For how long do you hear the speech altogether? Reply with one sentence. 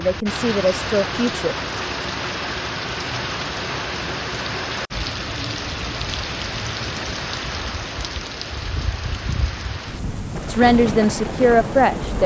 You can hear the speech for 3 seconds altogether.